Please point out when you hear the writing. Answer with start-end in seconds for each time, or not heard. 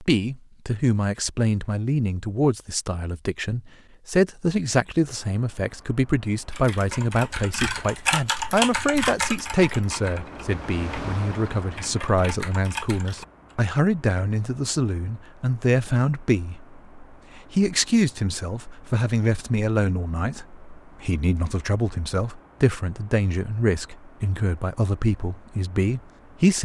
not heard.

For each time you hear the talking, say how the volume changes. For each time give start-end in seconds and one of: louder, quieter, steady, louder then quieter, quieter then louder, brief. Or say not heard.
0.0-26.5 steady.